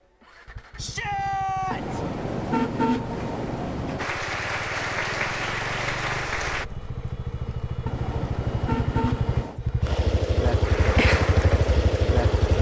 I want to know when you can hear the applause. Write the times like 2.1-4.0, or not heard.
4.0-6.7, 10.6-12.2.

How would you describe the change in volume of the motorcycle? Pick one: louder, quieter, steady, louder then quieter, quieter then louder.
louder.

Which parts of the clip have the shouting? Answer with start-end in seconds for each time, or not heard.
0.8-2.0.